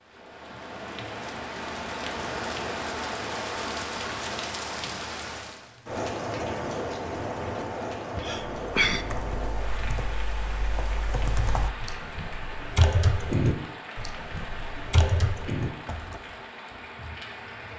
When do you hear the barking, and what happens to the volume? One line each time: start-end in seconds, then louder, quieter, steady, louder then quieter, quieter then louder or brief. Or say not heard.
not heard.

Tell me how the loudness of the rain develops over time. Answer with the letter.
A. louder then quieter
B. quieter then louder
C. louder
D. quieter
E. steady
D.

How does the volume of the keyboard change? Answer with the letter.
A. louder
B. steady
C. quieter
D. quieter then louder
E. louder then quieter
A.